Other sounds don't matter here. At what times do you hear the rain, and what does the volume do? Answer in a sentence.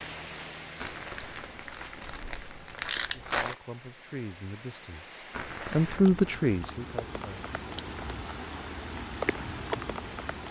The rain can be heard from 0.0 to 10.4 s, getting quieter then louder.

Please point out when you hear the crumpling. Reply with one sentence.
The crumpling can be heard from 0.8 to 3.5 s and from 5.3 to 6.2 s.